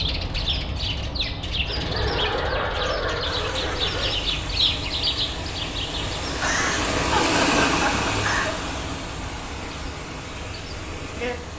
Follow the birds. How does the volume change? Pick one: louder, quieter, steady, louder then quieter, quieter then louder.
quieter.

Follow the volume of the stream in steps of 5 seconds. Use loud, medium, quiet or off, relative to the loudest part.
medium, loud, medium.